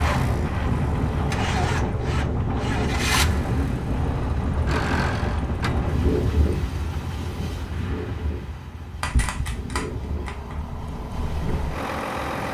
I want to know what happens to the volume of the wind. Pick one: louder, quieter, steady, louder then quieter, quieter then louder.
quieter.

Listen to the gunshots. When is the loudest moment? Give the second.
9 s.